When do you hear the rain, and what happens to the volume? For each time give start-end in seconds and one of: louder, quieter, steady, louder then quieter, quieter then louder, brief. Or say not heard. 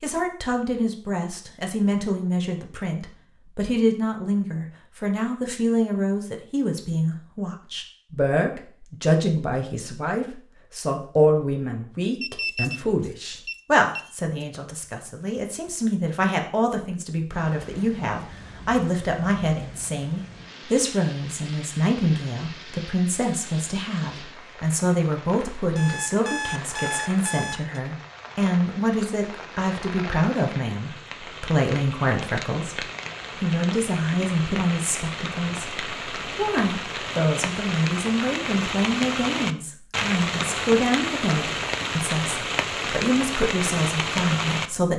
17.3-44.7 louder.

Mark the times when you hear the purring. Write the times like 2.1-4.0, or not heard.
not heard.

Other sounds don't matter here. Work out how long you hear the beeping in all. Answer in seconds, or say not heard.
4 s.